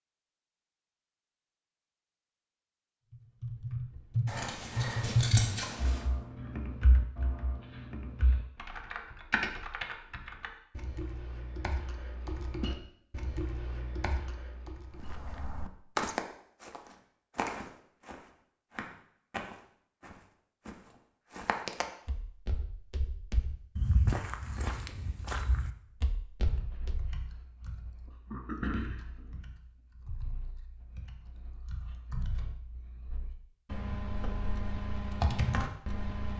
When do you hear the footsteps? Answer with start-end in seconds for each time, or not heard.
14.9-27.1.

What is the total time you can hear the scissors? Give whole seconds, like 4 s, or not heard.
2 s.